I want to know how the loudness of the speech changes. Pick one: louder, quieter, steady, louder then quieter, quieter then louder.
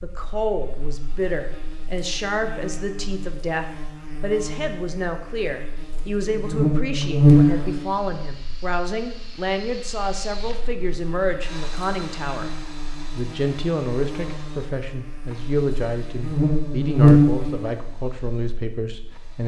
steady.